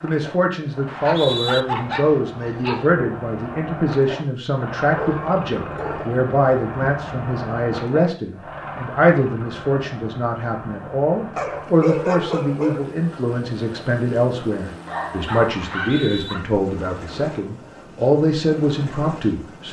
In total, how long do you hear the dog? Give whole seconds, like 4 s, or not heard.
6 s.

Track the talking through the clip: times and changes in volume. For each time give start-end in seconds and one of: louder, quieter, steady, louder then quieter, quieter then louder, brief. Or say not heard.
0.0-19.6 steady.